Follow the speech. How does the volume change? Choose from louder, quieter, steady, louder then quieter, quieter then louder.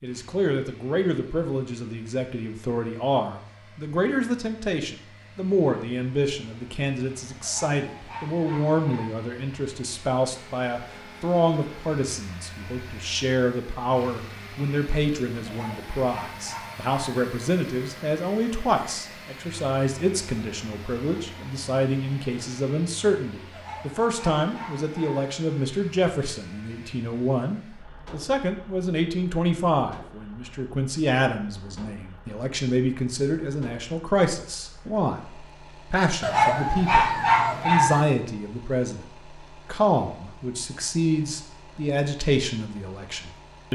steady.